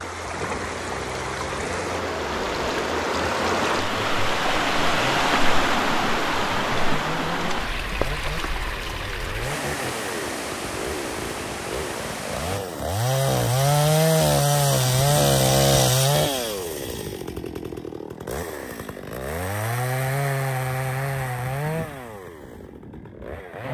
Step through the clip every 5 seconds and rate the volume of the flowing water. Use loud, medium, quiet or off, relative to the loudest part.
loud, loud, medium, off, off.